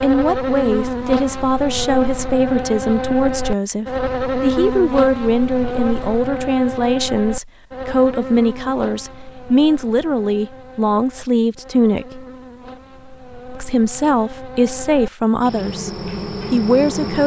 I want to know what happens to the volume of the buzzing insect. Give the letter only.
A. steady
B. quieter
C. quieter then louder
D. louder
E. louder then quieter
C.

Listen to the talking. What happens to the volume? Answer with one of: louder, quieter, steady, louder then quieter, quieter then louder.
steady.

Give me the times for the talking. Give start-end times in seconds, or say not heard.
0.0-12.2, 13.6-17.2.